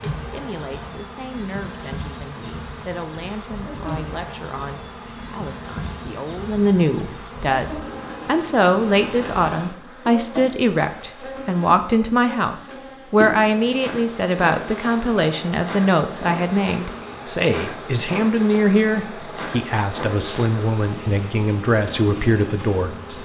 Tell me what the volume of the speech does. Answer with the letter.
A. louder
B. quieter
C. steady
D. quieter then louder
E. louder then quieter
A.